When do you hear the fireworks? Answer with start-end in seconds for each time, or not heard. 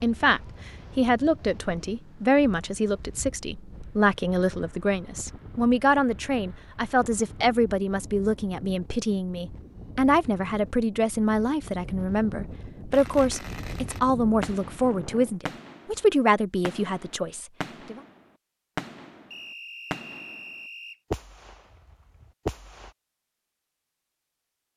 12.9-16.1, 16.6-20.5, 21.1-22.9.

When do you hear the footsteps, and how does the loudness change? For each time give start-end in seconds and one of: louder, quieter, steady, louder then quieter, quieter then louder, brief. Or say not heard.
not heard.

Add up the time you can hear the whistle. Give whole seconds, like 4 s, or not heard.
2 s.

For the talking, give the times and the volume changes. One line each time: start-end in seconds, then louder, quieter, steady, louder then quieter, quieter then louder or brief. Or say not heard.
0.0-18.0 steady.